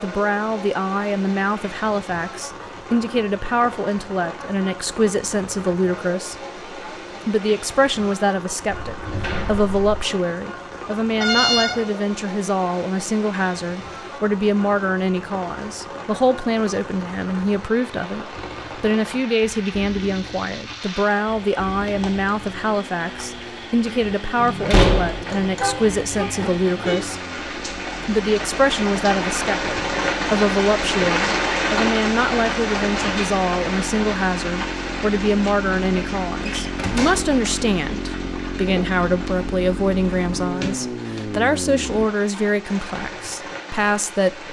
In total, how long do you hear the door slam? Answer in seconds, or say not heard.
3 s.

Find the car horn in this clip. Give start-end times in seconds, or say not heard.
11.2-11.8, 24.4-27.1.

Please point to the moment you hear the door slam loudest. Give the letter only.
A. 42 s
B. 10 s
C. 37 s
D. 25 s
D.